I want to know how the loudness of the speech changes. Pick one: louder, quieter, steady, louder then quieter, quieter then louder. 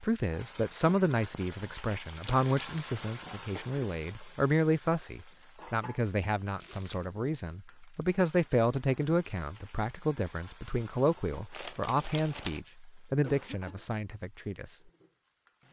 steady.